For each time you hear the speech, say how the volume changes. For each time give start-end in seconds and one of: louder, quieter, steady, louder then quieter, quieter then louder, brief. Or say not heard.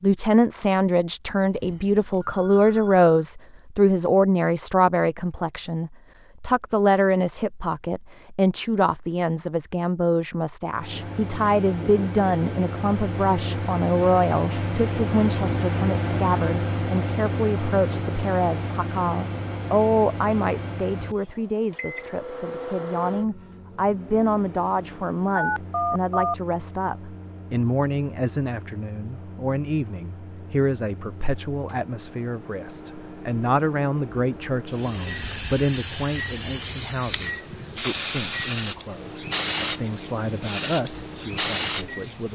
0.0-42.3 quieter.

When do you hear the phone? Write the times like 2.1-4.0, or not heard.
1.5-3.1, 25.4-26.4.